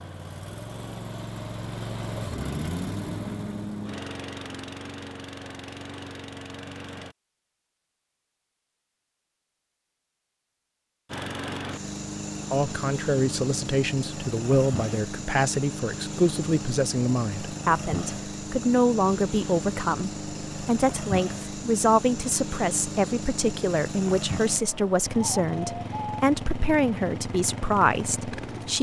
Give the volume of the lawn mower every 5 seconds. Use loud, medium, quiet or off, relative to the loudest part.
loud, medium, loud, loud, loud, loud.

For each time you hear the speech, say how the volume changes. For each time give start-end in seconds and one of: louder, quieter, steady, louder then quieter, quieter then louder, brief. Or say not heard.
12.5-28.7 steady.